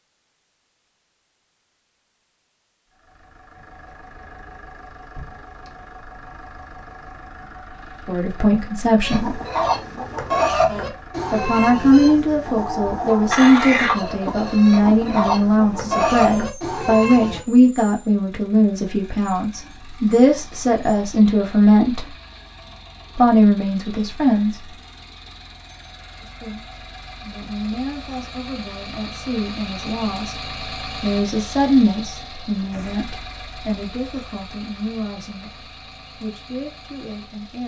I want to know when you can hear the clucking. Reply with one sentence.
The clucking can be heard from 9.0 to 17.4 s.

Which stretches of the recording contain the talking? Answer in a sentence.
The talking can be heard from 8.1 to 9.4 s, from 11.3 to 22.1 s, from 23.1 to 24.6 s and from 26.2 to 37.6 s.